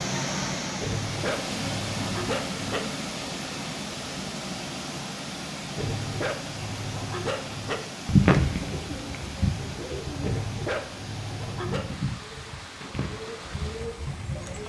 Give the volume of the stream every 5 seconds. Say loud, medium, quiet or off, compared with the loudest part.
loud, medium, medium.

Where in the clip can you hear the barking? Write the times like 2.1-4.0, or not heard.
0.8-2.8, 5.8-7.8, 10.2-11.8.